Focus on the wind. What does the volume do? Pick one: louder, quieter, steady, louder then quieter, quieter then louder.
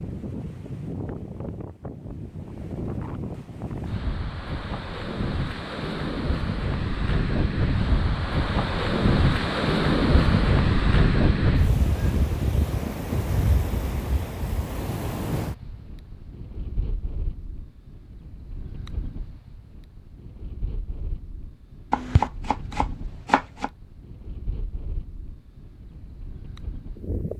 louder then quieter.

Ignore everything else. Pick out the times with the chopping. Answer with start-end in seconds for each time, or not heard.
21.9-23.7.